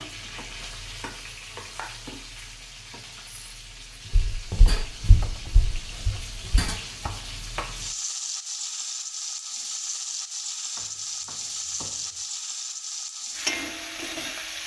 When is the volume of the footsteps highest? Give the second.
5 s.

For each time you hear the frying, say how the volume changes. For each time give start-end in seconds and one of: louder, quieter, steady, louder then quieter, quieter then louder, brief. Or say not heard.
0.0-14.6 louder.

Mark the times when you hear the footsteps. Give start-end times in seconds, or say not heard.
4.1-6.7.